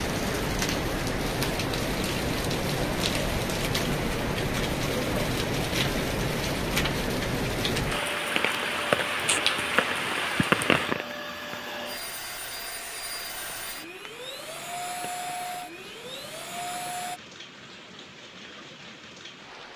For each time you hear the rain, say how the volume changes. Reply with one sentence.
You can hear the rain from 0.0 to 19.7 s, getting quieter.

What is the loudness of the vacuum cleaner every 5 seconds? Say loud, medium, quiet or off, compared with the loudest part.
off, loud, loud, loud.